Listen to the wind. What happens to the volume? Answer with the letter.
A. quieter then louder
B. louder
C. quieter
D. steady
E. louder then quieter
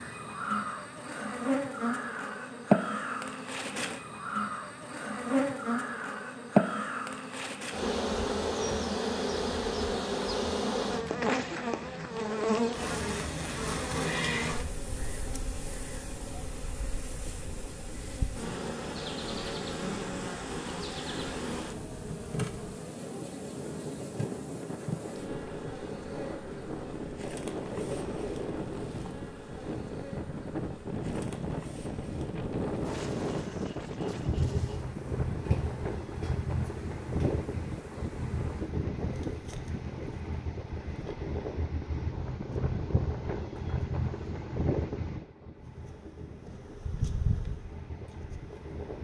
B.